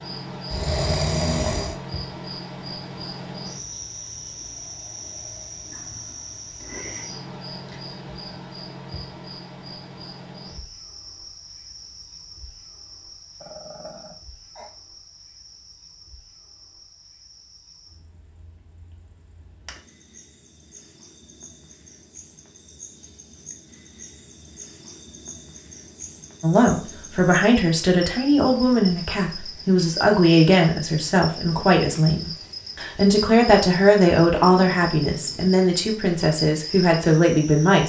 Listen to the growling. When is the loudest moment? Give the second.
1 s.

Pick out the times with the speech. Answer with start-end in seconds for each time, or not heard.
26.4-37.8.